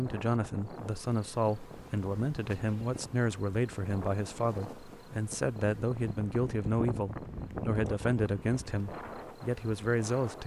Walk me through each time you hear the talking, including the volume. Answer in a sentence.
The talking can be heard from 0.0 to 10.4 s, at a steady volume.